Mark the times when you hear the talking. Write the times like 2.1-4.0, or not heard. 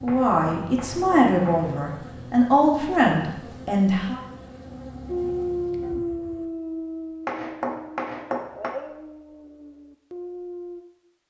0.0-4.2.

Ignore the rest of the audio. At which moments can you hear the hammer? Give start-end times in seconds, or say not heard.
0.1-1.8, 7.2-8.8.